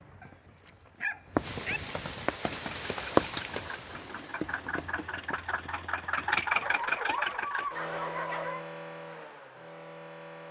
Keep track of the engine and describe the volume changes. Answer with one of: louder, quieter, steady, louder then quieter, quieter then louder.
louder then quieter.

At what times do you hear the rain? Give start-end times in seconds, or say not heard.
0.0-6.8.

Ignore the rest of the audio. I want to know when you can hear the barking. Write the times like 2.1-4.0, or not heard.
0.2-1.8, 6.6-8.7.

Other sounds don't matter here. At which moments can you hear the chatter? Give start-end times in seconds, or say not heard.
not heard.